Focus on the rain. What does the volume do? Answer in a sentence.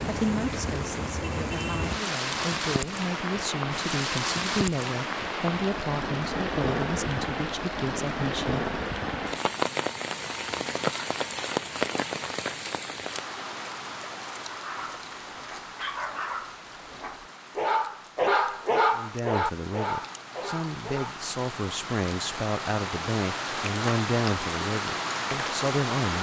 The loudness of the rain goes down, then up.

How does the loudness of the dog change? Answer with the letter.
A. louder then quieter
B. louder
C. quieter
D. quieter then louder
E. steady
A.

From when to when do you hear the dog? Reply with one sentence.
The dog can be heard from 14.4 to 21.2 s.